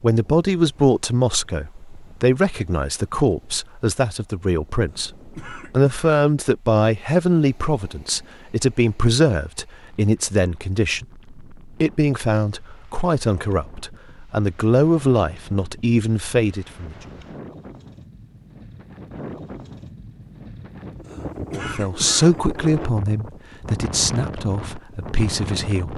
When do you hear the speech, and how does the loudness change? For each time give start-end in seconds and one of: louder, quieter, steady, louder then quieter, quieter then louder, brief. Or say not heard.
0.0-16.9 steady
21.5-25.9 quieter.